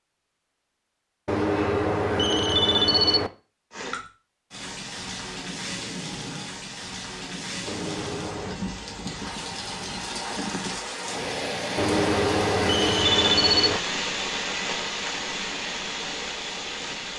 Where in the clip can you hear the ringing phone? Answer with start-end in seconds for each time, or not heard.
1.2-3.3, 7.7-8.6, 11.8-13.8.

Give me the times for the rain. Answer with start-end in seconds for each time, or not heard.
3.7-17.1.